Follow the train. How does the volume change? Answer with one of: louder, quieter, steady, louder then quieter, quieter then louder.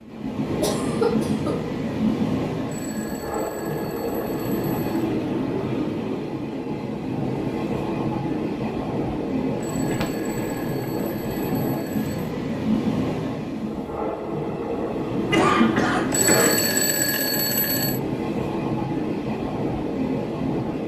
steady.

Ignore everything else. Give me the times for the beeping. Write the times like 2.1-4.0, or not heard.
2.6-5.0, 9.6-12.2, 16.1-18.0.